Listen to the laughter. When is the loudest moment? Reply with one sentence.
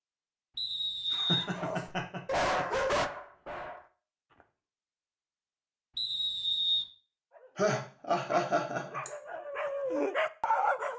The volume of the laughter peaks at 8 seconds.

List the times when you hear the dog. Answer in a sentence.
The dog can be heard from 1.6 to 4.5 s and from 7.3 to 10.9 s.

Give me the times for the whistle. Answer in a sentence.
You can hear the whistle from 0.6 to 1.9 s and from 6.0 to 6.8 s.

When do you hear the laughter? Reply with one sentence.
You can hear the laughter from 1.1 to 2.6 s and from 7.5 to 9.1 s.